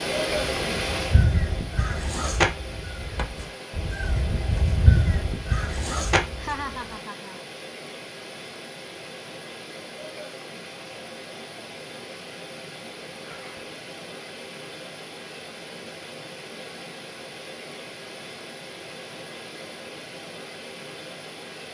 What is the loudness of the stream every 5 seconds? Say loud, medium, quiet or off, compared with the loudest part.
loud, medium, medium, medium, medium.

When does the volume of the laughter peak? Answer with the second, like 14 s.
7 s.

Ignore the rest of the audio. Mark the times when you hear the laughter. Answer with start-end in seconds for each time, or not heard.
6.4-7.5, 13.2-13.7.